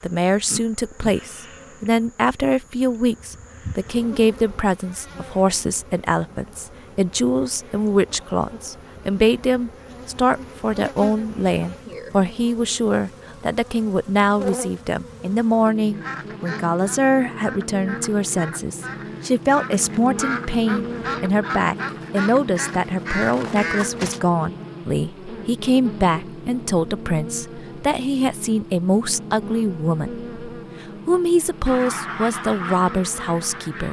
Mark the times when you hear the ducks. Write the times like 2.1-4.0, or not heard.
15.8-24.2, 31.6-33.8.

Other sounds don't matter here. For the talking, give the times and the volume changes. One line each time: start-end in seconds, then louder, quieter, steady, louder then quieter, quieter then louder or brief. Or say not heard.
0.0-33.8 steady.